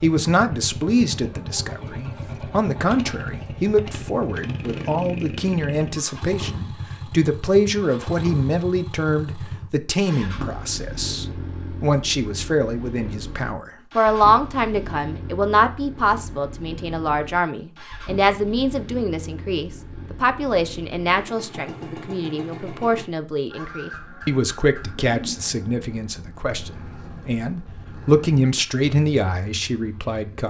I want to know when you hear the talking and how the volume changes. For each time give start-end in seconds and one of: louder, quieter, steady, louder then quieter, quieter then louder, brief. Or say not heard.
0.0-30.4 steady.